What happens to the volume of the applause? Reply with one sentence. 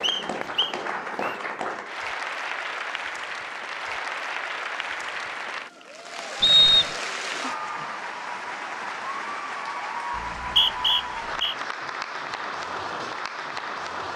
The loudness of the applause stays about the same.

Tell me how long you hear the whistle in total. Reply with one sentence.
You can hear the whistle for 3 seconds altogether.